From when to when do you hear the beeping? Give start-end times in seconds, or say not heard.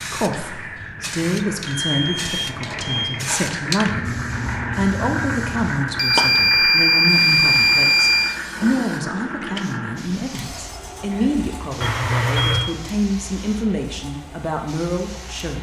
1.6-3.1, 6.0-8.3, 11.8-12.7.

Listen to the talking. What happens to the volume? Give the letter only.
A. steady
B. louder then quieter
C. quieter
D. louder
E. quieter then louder
A.